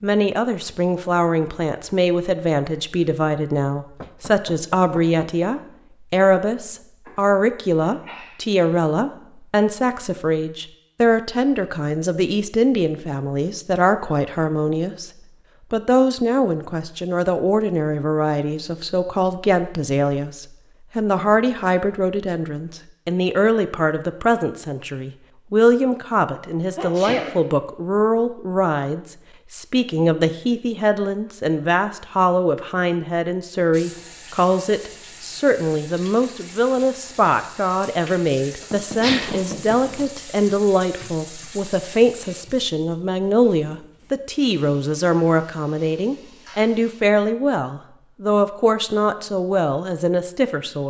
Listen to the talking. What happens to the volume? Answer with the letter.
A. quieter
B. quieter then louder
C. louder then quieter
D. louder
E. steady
E.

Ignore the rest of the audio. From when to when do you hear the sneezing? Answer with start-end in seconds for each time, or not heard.
7.0-8.4, 26.8-27.4, 39.0-40.0.